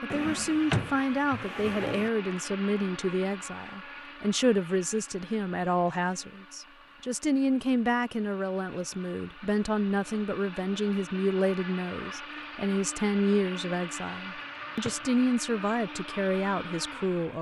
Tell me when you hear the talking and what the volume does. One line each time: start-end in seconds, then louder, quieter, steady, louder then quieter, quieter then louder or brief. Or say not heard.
0.0-17.3 steady.